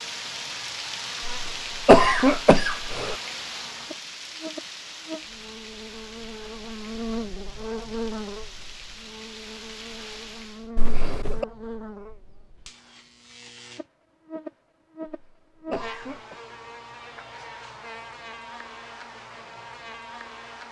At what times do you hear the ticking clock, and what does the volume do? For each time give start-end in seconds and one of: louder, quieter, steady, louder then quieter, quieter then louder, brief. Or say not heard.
not heard.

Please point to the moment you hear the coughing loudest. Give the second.
2 s.